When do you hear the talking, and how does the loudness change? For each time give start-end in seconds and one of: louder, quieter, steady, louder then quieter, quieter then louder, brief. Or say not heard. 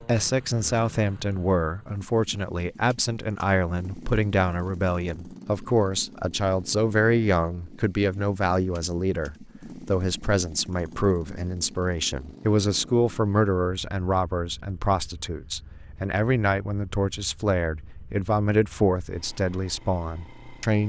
0.0-20.8 steady.